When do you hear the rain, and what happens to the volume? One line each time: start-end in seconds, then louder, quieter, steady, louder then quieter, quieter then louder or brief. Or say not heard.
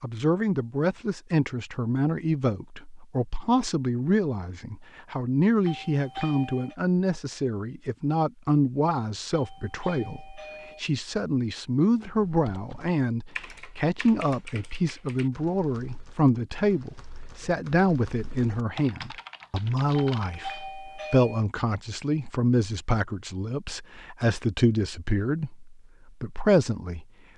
not heard.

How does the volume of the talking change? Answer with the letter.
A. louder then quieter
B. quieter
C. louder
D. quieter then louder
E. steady
E.